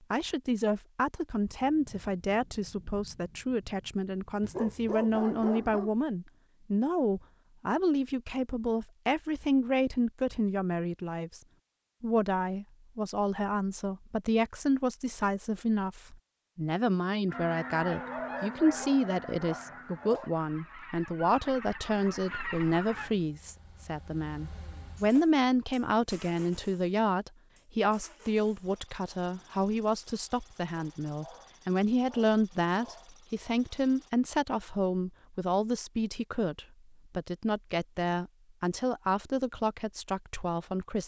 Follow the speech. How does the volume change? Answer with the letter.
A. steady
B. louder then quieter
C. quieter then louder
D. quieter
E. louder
A.